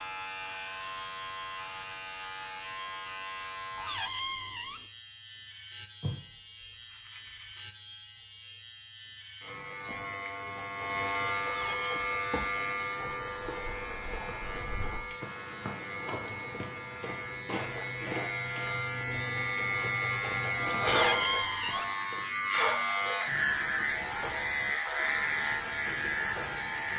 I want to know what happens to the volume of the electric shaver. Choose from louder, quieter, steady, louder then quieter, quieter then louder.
louder.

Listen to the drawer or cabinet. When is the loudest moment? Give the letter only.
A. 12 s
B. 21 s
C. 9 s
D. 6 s
B.